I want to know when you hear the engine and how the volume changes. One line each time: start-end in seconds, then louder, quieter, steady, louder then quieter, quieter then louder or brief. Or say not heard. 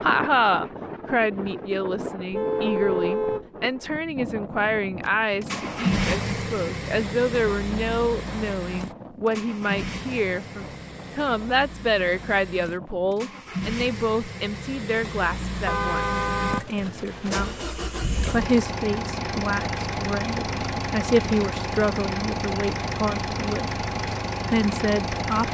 5.0-25.4 quieter then louder.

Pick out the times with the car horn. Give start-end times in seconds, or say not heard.
2.3-3.5, 15.7-17.6.